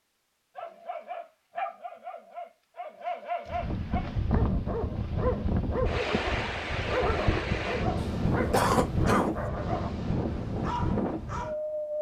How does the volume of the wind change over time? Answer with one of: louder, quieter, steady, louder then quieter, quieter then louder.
steady.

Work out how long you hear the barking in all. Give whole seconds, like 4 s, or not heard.
11 s.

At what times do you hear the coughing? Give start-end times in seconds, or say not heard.
8.0-9.5.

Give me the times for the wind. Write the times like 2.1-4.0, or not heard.
3.5-11.9.